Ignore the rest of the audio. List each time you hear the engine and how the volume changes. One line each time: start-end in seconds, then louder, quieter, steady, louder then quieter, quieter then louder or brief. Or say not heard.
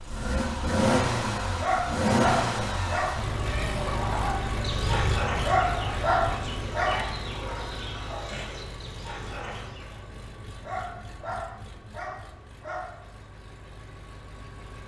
0.0-14.8 quieter.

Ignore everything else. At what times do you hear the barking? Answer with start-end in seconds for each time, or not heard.
1.6-3.1, 5.4-7.0, 10.6-12.9.